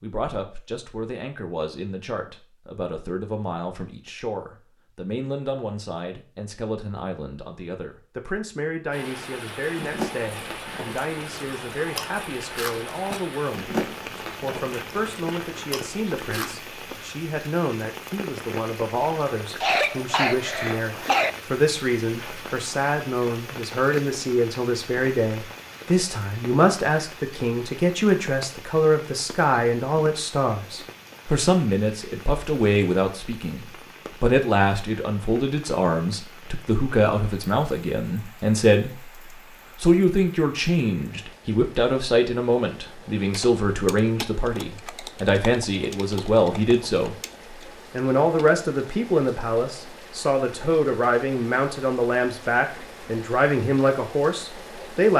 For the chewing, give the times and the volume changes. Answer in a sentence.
The chewing can be heard from 9.8 to 16.6 s, getting louder then quieter.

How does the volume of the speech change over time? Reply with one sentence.
The volume of the speech goes up.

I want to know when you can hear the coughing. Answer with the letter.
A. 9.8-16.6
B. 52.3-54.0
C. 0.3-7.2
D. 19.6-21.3
D.